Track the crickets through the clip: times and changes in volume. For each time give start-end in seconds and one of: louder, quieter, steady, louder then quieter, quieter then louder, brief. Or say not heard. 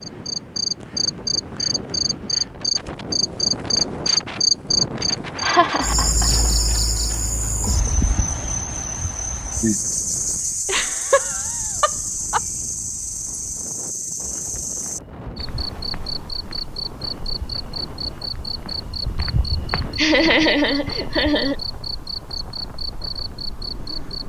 0.0-24.2 quieter.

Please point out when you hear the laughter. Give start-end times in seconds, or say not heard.
5.4-6.5, 10.7-12.4, 19.9-21.6.